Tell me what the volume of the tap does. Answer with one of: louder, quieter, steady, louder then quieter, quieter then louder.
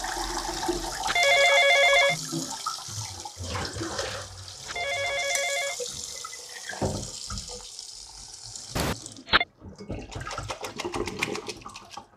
quieter then louder.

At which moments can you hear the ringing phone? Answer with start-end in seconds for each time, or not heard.
0.5-2.1, 4.1-5.8, 8.8-9.4.